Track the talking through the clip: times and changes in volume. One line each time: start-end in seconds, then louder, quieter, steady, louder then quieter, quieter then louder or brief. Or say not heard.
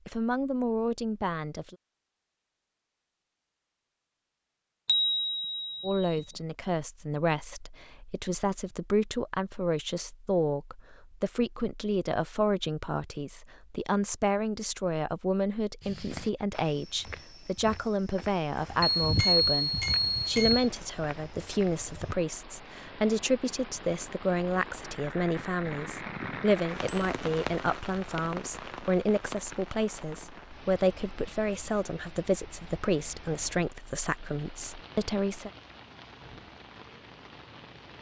0.1-1.8 brief
5.8-35.5 steady.